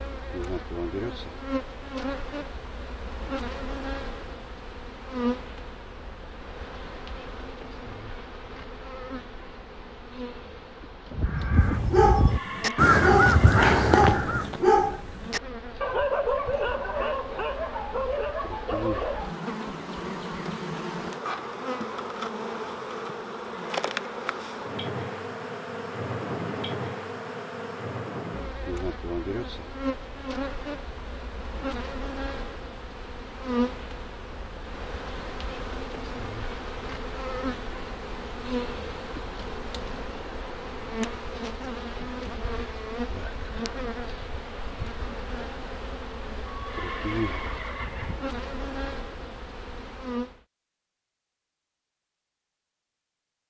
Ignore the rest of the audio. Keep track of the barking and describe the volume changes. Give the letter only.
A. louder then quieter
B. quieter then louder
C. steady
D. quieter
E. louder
D.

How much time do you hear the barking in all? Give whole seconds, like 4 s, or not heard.
8 s.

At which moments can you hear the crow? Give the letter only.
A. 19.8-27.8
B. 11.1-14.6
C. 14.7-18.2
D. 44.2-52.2
B.